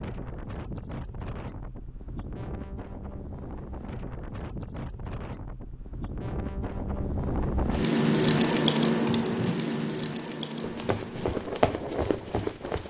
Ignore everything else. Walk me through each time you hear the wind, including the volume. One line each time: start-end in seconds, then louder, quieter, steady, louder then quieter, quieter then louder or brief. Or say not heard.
0.0-12.8 louder then quieter.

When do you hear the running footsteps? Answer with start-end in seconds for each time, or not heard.
10.6-12.8.